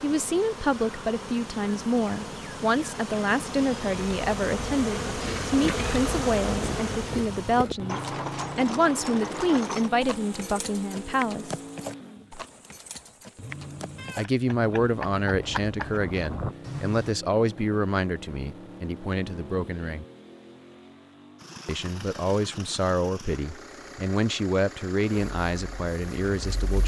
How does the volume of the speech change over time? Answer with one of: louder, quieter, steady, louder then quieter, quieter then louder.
steady.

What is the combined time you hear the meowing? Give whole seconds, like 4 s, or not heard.
2 s.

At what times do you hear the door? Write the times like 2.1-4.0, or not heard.
not heard.